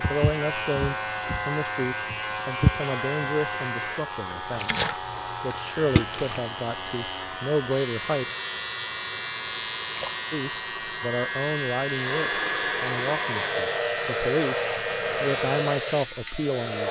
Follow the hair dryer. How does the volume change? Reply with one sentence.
The loudness of the hair dryer goes up.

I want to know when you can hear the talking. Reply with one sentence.
You can hear the talking from 0.0 to 4.7 s, from 5.4 to 8.2 s and from 10.3 to 16.8 s.